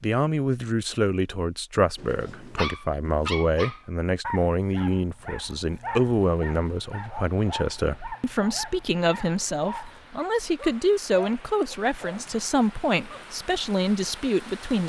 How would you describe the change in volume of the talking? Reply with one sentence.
The volume of the talking stays about the same.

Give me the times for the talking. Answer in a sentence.
You can hear the talking from 0.0 to 14.8 s.